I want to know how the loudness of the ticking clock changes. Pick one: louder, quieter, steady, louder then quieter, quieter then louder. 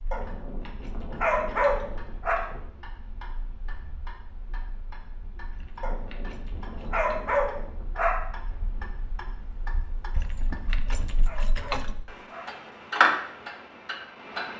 louder.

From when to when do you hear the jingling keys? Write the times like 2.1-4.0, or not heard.
0.1-2.8, 5.5-7.2, 10.2-11.9.